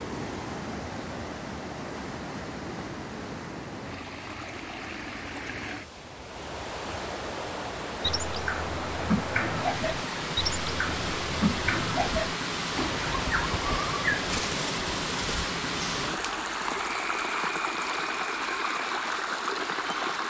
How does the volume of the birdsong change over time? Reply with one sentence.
The loudness of the birdsong goes down.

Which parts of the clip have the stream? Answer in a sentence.
The stream can be heard from 0.0 to 20.2 s.